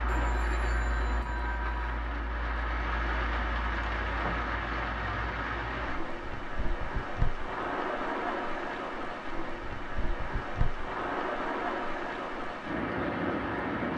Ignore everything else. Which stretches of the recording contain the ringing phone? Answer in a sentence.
The ringing phone can be heard from 0.1 to 2.0 s.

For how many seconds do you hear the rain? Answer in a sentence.
You can hear the rain for 14 seconds altogether.